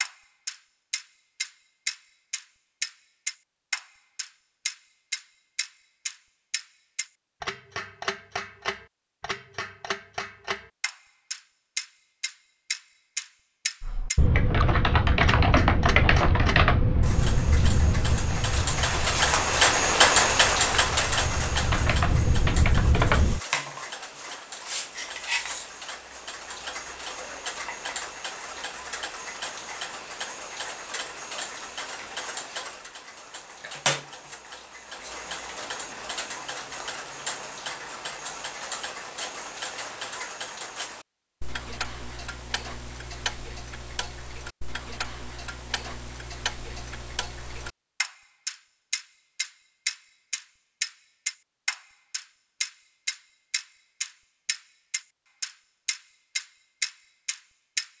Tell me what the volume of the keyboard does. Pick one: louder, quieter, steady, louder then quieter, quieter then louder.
quieter then louder.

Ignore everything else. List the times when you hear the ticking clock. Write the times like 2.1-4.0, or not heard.
0.0-57.9.